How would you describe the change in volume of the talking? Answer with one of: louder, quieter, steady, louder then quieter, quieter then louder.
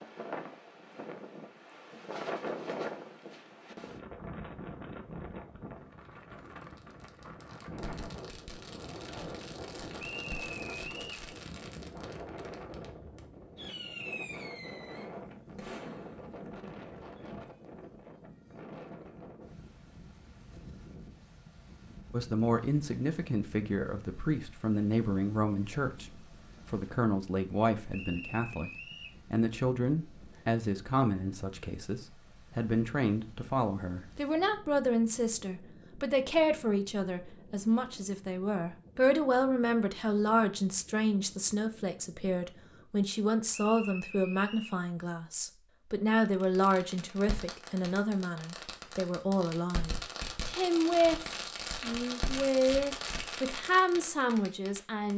steady.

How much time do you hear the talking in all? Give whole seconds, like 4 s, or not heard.
33 s.